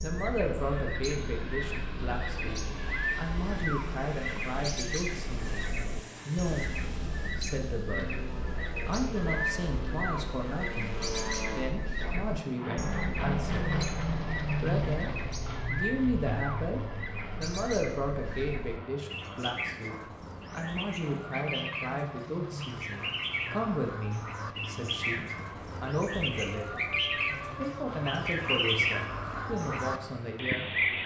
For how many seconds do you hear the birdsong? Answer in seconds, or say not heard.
31 s.